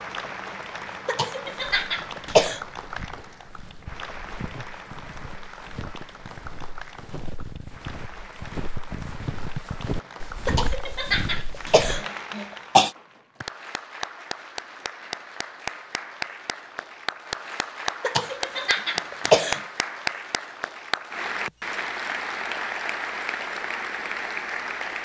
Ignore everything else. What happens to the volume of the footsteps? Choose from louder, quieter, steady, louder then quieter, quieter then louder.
louder.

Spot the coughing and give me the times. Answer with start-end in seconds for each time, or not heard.
1.1-2.6, 10.4-12.9, 18.0-19.6.